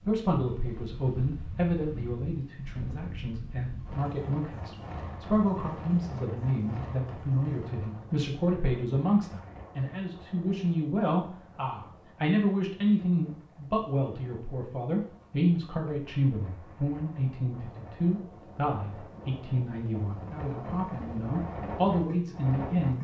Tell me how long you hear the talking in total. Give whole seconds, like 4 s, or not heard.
23 s.